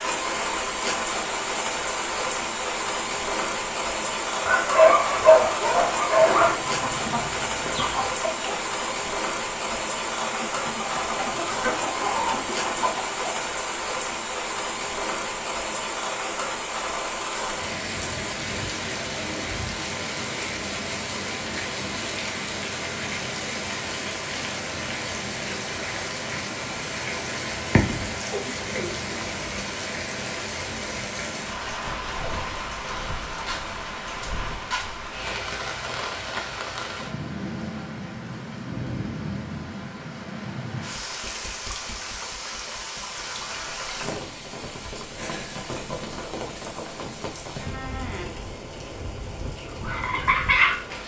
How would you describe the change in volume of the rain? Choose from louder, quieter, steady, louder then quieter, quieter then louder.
quieter.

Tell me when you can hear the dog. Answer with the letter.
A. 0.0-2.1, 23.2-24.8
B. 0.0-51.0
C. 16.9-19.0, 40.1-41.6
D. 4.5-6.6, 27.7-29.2
D.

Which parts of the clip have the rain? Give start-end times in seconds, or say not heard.
0.0-51.0.